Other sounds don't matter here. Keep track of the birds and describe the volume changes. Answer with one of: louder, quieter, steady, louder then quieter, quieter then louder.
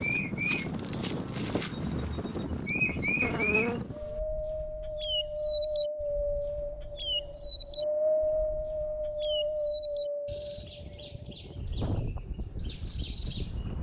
quieter.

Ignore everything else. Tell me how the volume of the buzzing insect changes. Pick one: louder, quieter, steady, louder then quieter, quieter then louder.
quieter then louder.